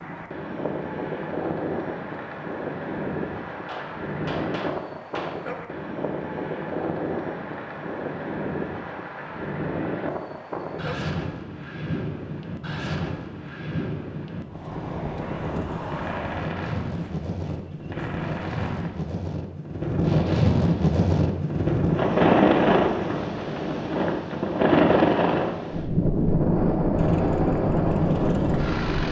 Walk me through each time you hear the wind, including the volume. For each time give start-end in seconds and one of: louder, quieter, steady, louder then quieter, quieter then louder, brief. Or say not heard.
0.0-29.0 louder.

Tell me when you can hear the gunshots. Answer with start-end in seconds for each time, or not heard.
3.6-5.3, 15.2-18.9.